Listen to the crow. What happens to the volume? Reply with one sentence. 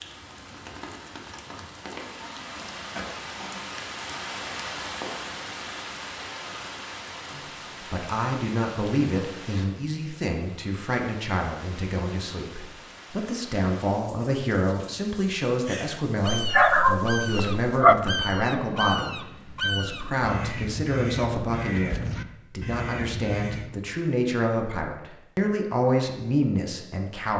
The volume of the crow stays about the same.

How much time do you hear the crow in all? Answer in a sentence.
You can hear the crow for 8 seconds altogether.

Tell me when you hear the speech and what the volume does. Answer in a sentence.
You can hear the speech from 7.3 to 27.3 s, at a steady volume.